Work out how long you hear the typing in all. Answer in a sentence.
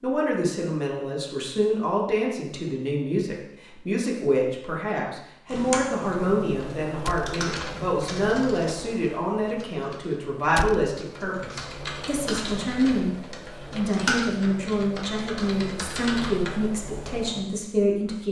The typing can be heard for 12 seconds in total.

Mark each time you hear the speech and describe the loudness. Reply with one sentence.
The speech can be heard from 0.0 to 18.2 s, at a steady volume.